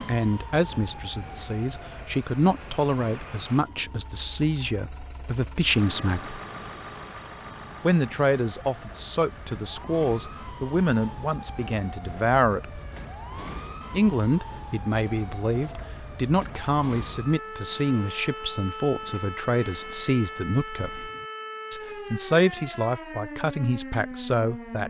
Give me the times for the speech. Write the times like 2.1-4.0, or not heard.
0.1-6.3, 7.8-12.8, 13.9-21.1, 21.7-24.8.